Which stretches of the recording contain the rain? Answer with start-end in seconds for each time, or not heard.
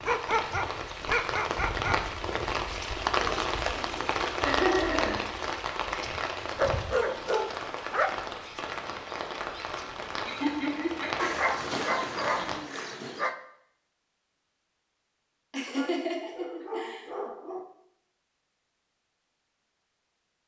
0.0-12.6.